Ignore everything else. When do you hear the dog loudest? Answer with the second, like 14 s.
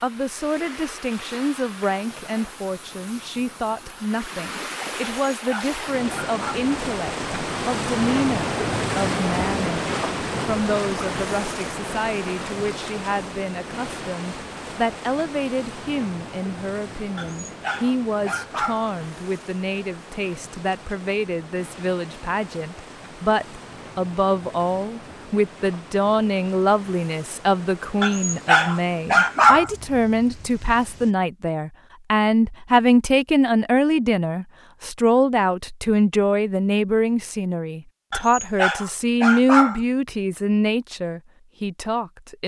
29 s.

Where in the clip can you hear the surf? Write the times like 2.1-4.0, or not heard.
0.0-31.1.